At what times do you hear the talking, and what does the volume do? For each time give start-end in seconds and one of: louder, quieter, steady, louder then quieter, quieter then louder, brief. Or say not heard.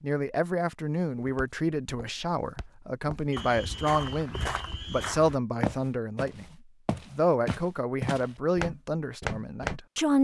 0.0-10.1 steady.